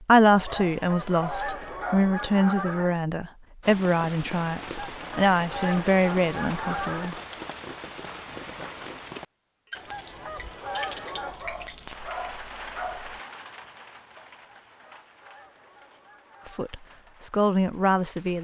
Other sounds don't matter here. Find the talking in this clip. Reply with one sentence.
You can hear the talking from 0.1 to 7.2 s and from 16.4 to 18.3 s.